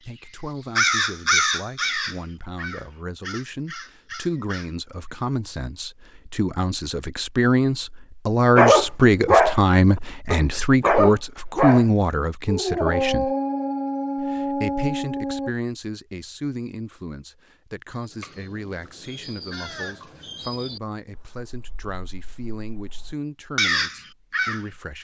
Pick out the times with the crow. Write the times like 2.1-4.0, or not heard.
0.1-4.7, 17.9-24.6.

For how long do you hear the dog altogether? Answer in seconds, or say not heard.
6 s.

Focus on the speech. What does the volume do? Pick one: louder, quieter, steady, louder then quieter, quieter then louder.
louder then quieter.